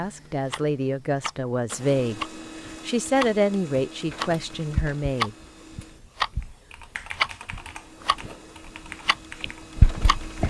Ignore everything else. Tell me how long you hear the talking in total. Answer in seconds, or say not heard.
5 s.